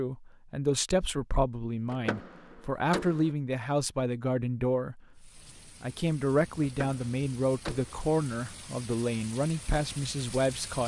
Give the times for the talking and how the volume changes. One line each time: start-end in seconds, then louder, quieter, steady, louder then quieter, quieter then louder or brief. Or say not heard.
0.0-10.8 steady.